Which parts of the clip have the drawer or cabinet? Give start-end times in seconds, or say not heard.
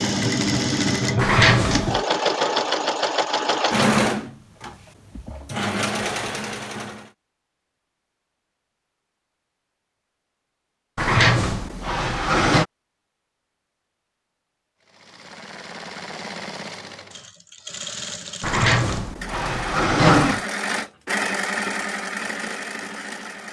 1.1-2.0, 10.9-12.7, 18.4-20.4.